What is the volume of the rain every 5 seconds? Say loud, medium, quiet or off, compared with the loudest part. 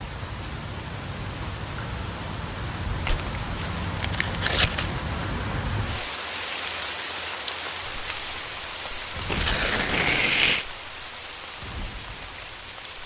loud, loud, medium.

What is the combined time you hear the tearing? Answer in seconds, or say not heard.
3 s.